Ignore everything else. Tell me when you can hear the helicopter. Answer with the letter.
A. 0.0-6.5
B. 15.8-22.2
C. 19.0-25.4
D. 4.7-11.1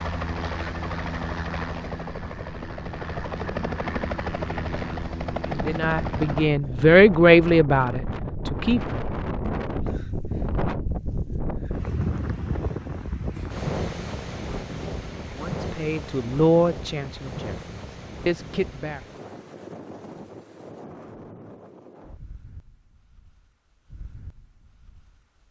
A.